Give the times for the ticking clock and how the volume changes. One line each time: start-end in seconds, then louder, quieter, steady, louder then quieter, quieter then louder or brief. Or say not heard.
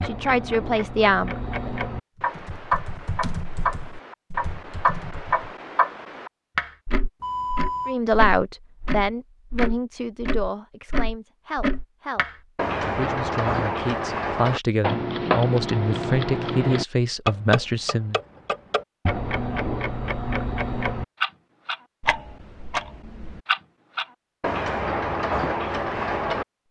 0.0-26.6 steady.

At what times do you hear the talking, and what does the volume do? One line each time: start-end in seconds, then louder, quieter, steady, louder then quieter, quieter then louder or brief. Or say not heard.
0.0-1.7 brief
7.8-18.2 quieter then louder.